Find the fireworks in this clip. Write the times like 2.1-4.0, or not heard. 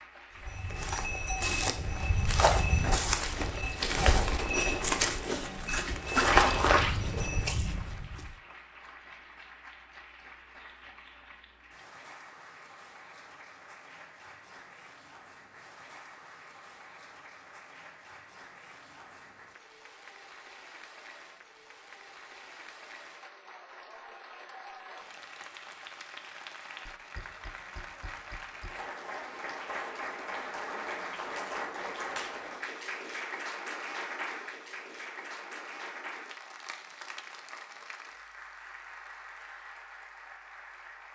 not heard.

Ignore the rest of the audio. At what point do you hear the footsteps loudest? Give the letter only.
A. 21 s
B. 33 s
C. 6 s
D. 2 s
C.